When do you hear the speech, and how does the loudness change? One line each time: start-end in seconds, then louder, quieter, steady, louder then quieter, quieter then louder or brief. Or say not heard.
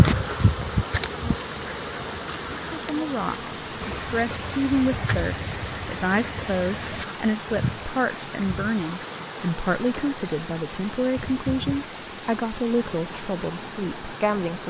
2.5-14.6 steady.